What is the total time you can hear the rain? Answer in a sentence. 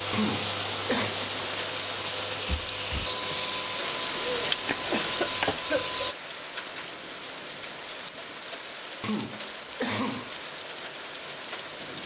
The rain can be heard for 12 seconds in total.